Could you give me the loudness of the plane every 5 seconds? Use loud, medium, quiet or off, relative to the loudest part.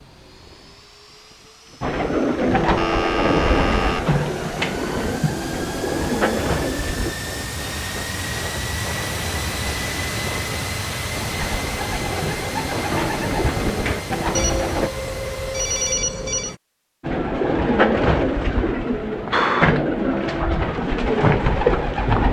quiet, loud, loud, medium, off.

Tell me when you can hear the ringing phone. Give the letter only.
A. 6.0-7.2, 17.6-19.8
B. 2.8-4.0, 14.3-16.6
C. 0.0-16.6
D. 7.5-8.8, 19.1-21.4
B.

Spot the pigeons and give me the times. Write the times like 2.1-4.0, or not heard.
1.8-7.2, 11.1-14.9, 17.0-22.2.